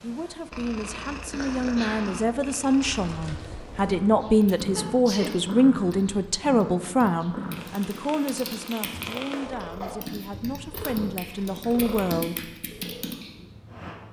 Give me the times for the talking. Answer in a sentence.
The talking can be heard from 0.0 to 12.5 s.